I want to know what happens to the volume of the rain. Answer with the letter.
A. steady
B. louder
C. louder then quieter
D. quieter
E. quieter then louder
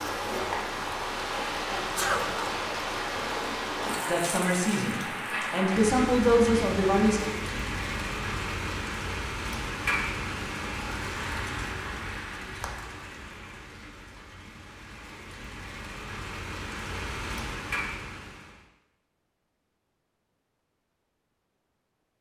D.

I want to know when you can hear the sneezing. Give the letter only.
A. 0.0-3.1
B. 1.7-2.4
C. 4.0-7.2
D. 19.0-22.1
B.